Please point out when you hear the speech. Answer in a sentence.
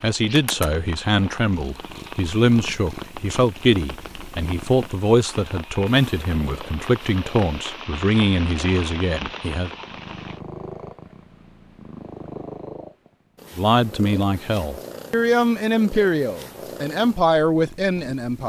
You can hear the speech from 0.0 to 9.7 s and from 13.6 to 18.4 s.